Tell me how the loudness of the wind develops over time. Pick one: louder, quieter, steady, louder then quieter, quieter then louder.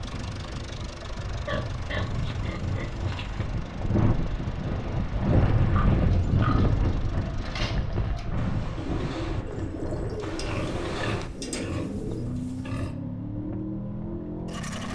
louder then quieter.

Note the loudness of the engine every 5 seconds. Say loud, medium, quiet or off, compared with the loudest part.
medium, medium, loud.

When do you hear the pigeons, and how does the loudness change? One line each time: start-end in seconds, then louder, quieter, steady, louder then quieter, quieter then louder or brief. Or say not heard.
6.0-12.3 louder.